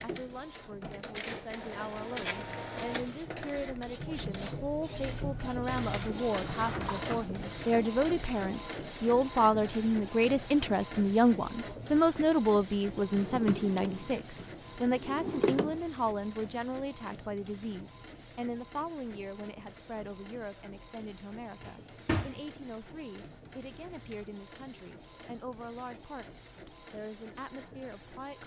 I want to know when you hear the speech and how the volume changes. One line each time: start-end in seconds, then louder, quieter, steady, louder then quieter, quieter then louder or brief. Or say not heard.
0.0-28.4 louder then quieter.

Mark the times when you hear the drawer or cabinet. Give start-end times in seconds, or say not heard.
6.3-7.2, 13.1-15.8, 21.6-22.4.